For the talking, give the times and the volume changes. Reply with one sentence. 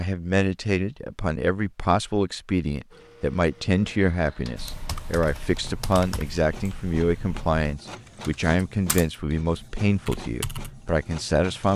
You can hear the talking from 0.0 to 11.7 s, at a steady volume.